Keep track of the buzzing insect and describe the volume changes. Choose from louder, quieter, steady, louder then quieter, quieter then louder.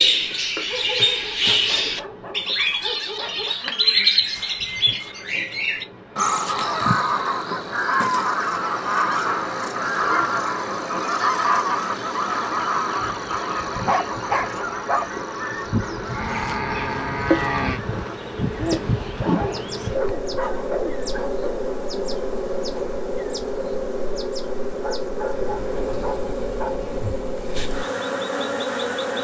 louder.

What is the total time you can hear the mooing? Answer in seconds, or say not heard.
2 s.